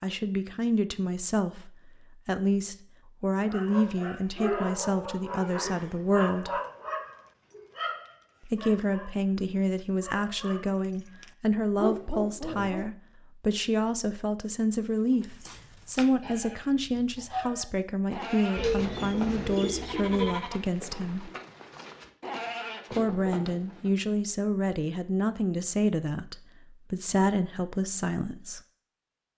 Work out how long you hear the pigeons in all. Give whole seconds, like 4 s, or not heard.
2 s.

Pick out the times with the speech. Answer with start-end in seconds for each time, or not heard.
0.0-6.5, 8.4-21.3, 22.9-28.6.